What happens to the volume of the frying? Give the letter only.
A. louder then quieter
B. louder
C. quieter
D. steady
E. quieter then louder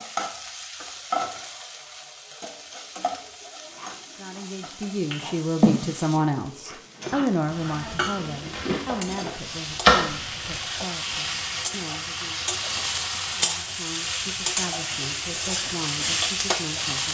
E.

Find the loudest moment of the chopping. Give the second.
10 s.